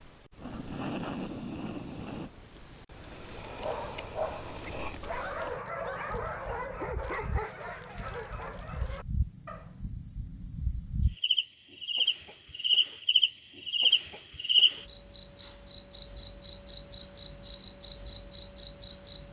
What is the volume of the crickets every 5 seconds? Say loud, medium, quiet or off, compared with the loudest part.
quiet, quiet, medium, loud.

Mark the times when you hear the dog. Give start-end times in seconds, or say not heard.
3.5-9.8.